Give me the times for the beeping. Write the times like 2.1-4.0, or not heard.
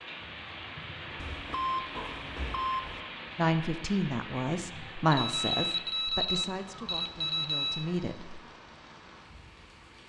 1.2-3.0, 5.1-7.9.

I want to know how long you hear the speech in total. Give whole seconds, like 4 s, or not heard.
5 s.